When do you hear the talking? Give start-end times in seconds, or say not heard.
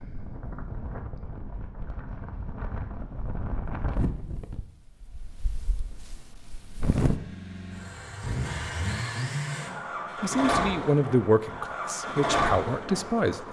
10.2-13.4.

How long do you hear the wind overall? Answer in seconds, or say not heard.
7 s.